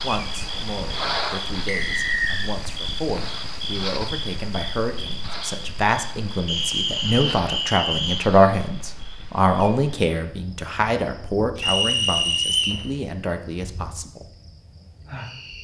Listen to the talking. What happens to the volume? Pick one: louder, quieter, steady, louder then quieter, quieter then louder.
louder then quieter.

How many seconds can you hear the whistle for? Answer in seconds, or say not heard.
4 s.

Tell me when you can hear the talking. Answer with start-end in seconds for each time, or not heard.
0.0-14.3.